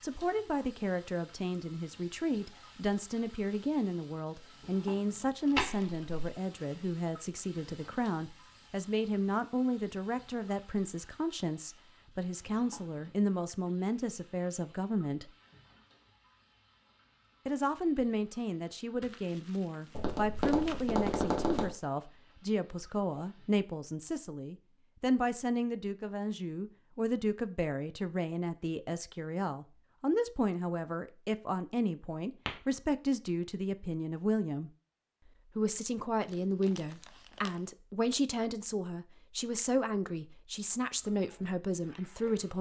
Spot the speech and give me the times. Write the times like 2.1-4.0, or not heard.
0.0-15.3, 17.4-34.7, 35.5-42.5.